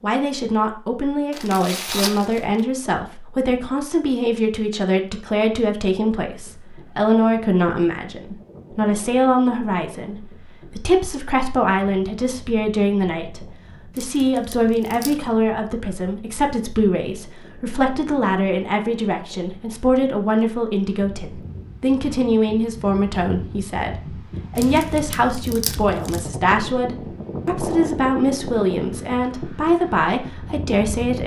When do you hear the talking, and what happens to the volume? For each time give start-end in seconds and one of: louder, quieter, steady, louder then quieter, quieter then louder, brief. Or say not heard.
0.0-31.2 steady.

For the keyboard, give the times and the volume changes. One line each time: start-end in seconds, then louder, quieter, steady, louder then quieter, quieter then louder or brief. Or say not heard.
not heard.